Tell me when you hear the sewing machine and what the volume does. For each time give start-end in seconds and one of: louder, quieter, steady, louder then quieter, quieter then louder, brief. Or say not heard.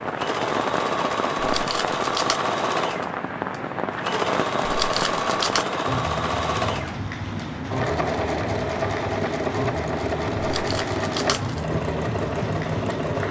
0.0-13.2 steady.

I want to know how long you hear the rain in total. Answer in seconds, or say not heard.
13 s.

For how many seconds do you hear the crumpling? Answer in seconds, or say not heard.
3 s.